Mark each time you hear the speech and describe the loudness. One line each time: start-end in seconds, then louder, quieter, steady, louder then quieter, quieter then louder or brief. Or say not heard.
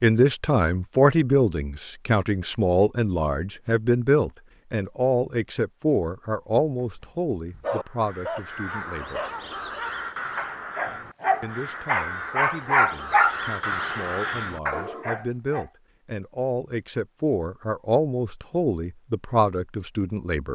0.0-9.2 quieter
11.4-20.4 louder.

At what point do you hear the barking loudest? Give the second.
13 s.